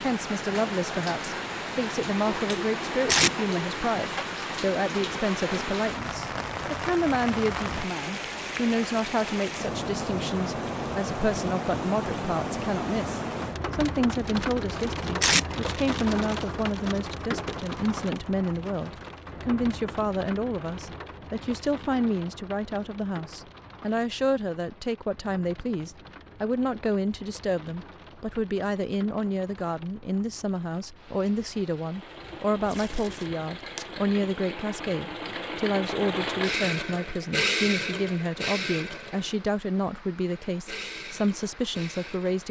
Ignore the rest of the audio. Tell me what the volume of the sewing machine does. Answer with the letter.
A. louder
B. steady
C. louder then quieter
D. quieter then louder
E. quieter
C.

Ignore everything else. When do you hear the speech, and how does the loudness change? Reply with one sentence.
The speech can be heard from 0.0 to 42.4 s, at a steady volume.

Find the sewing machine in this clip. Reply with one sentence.
You can hear the sewing machine from 31.8 to 42.4 s.